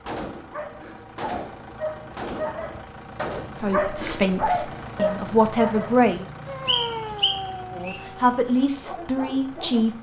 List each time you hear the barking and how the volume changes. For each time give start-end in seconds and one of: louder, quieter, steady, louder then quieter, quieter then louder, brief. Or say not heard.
0.3-9.9 louder then quieter.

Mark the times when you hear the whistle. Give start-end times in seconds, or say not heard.
6.7-8.0.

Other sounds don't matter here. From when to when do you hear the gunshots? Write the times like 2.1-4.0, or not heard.
0.1-3.5.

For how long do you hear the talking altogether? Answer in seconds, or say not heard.
5 s.